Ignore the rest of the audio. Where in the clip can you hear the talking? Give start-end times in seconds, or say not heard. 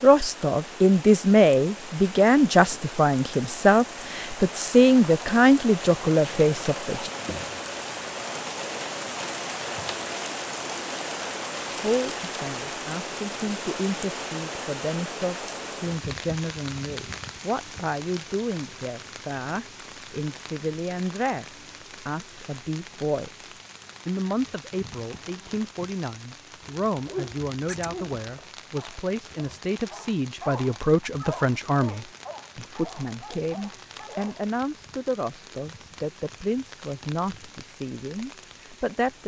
0.0-7.1, 11.7-39.2.